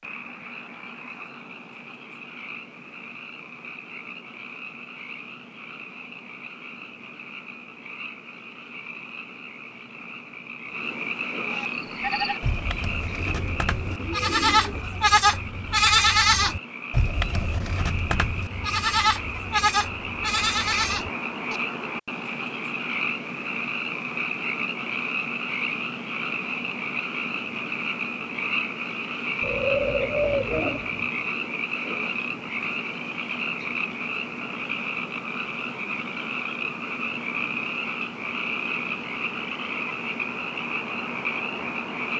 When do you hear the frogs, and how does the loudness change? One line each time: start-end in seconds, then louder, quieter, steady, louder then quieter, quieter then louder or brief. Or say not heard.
0.0-42.1 louder.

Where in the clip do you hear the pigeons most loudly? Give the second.
30 s.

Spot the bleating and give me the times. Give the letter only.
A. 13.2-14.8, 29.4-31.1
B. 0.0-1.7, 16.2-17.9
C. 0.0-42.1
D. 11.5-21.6
D.